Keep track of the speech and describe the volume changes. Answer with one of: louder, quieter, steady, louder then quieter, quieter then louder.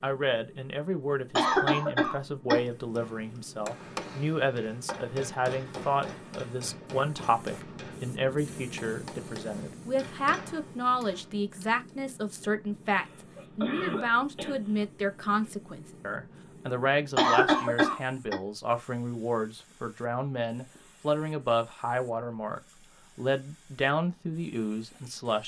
steady.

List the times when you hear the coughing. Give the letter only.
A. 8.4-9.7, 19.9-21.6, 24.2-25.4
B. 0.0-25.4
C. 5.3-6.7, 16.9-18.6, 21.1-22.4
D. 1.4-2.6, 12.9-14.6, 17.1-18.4
D.